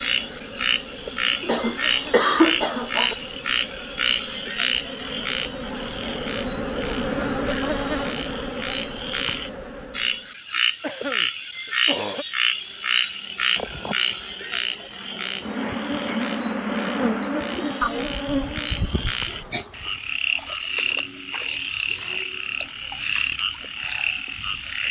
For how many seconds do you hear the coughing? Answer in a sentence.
You can hear the coughing for 5 seconds altogether.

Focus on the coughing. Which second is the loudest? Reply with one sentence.
The volume of the coughing peaks at 2 seconds.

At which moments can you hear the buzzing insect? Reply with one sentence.
You can hear the buzzing insect from 0.0 to 10.3 s and from 12.3 to 20.2 s.